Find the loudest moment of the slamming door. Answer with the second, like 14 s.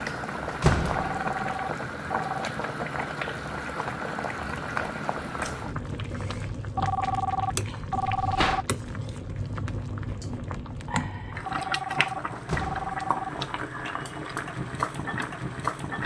1 s.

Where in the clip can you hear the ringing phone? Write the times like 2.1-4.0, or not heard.
0.9-2.5, 6.8-8.6, 11.4-13.3.